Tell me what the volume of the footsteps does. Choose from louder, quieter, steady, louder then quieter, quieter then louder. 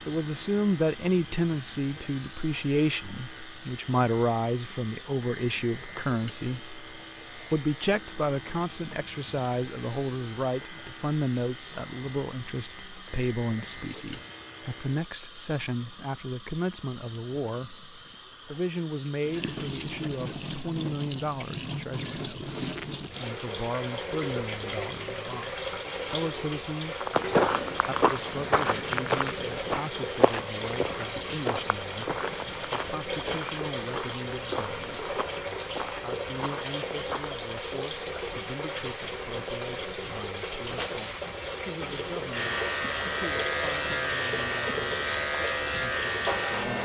quieter.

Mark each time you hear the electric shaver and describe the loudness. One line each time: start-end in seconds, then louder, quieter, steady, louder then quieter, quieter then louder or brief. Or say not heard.
0.0-15.1 steady
42.3-46.8 steady.